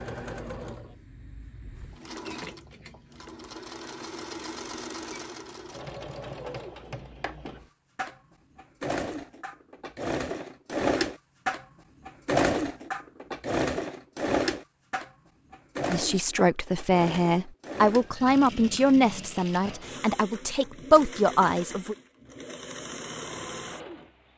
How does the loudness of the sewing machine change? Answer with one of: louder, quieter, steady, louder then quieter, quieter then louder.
louder then quieter.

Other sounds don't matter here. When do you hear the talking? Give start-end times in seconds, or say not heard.
15.9-21.9.